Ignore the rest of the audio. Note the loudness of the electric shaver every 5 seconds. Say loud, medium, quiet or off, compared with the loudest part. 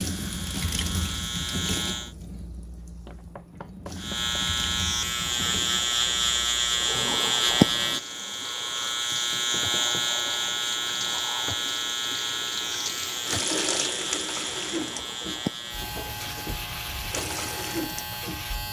medium, loud, medium, medium.